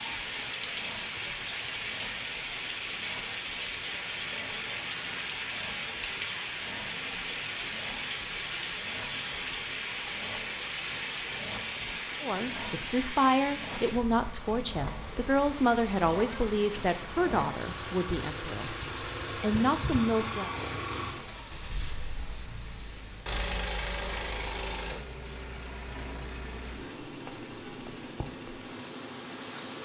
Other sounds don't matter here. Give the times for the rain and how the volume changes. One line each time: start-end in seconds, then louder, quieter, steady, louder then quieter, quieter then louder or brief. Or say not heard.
0.0-29.7 quieter.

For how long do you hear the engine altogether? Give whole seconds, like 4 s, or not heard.
30 s.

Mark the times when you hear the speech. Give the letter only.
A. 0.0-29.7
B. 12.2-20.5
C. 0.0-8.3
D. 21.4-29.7
B.